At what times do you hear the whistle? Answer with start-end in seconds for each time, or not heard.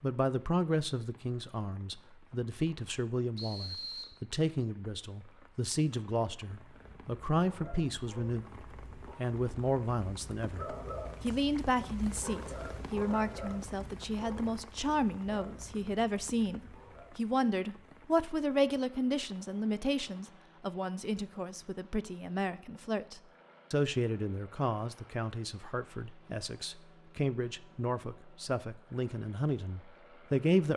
3.4-4.2.